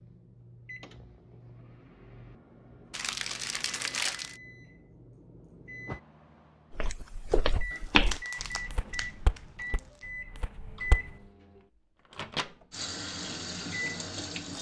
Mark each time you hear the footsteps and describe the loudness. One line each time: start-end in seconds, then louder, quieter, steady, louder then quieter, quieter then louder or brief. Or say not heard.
6.8-11.1 louder then quieter.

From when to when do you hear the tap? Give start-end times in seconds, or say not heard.
12.7-14.5.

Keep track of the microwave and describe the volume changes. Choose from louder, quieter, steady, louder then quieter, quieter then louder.
louder.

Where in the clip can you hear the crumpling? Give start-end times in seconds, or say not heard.
2.9-4.4, 7.7-10.1.